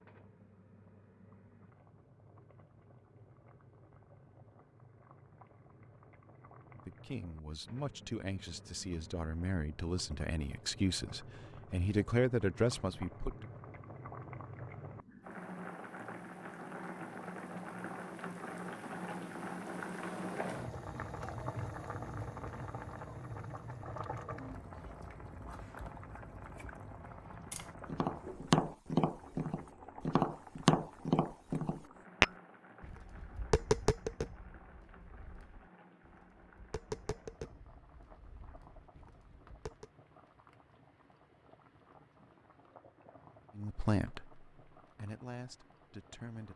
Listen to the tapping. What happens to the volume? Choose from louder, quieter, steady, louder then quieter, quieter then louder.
quieter.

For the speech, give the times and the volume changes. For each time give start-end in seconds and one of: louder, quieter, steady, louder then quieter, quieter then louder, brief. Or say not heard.
6.8-13.4 louder
43.5-46.5 brief.